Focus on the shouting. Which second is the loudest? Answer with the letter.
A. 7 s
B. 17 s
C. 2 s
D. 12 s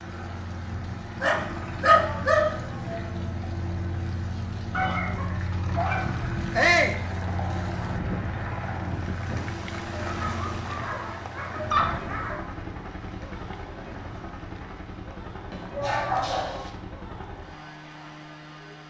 A.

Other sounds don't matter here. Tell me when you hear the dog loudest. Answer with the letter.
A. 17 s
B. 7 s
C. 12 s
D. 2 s
D.